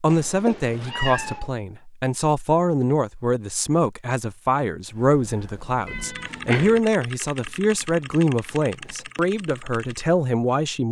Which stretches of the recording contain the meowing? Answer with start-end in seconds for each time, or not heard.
0.1-1.5, 5.8-6.8.